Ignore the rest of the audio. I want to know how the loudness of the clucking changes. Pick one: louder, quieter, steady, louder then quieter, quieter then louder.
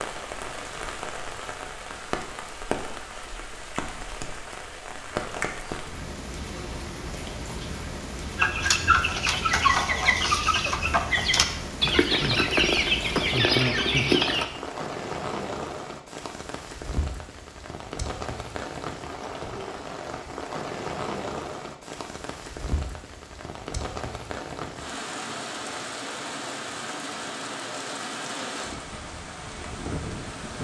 steady.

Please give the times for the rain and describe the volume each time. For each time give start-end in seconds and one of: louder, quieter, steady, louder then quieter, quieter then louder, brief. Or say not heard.
0.0-30.6 steady.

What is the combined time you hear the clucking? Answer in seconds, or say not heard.
6 s.